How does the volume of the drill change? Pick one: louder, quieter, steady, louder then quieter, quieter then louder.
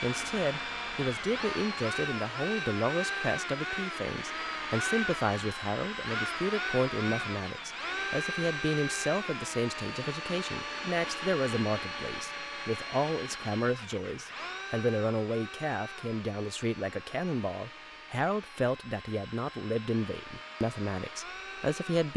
quieter.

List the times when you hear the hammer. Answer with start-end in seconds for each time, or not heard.
not heard.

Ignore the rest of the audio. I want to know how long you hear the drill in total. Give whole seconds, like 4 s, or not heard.
22 s.